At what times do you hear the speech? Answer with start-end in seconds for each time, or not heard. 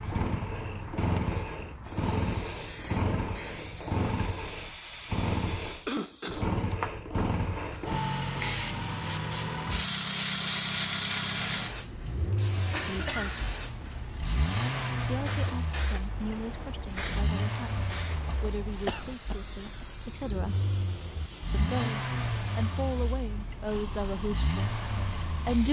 12.8-13.4, 15.0-20.6, 21.5-25.6.